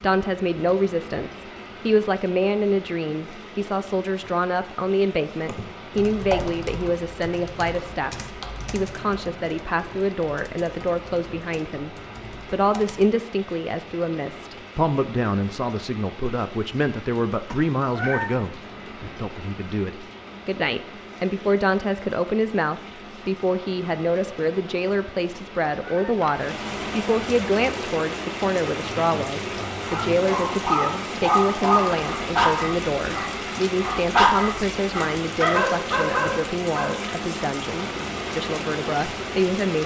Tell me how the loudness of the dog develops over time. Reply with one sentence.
The loudness of the dog goes down, then up.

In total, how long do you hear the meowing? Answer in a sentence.
You can hear the meowing for 2 seconds altogether.